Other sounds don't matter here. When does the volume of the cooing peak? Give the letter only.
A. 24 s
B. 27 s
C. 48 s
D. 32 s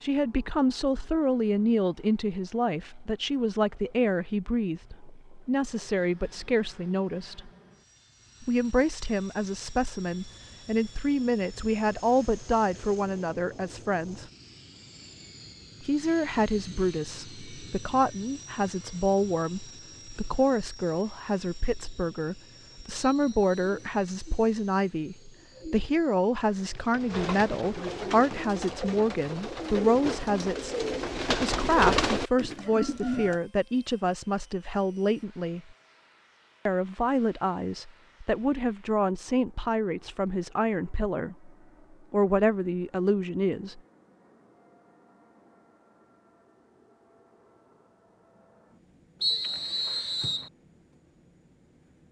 D.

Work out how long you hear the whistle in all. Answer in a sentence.
You can hear the whistle for 2 seconds altogether.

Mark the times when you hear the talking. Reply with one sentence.
You can hear the talking from 0.0 to 7.5 s, from 8.4 to 14.2 s, from 15.8 to 35.6 s, from 36.6 to 41.5 s and from 42.1 to 43.8 s.